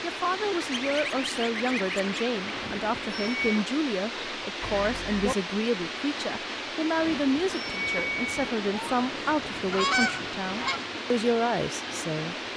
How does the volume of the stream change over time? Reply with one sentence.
The loudness of the stream stays about the same.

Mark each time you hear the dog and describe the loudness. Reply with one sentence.
You can't hear the dog here.